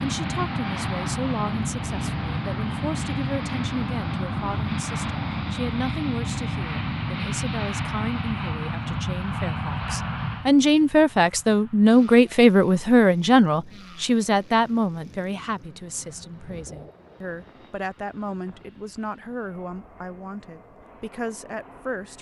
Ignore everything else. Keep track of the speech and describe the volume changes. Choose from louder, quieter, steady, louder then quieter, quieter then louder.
louder then quieter.